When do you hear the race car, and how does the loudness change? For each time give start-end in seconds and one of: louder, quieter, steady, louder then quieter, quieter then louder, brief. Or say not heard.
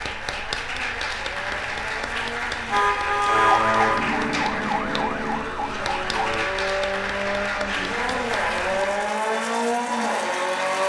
0.0-10.8 louder.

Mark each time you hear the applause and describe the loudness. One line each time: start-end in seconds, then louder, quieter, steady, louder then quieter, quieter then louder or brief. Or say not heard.
0.0-9.2 steady.